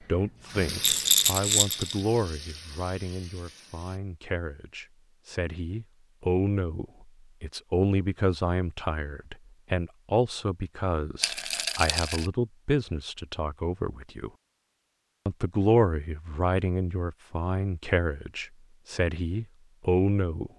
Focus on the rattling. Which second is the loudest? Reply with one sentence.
The loudest moment of the rattling is at 1 second.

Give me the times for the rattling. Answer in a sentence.
The rattling can be heard from 0.8 to 2.0 s and from 11.2 to 12.3 s.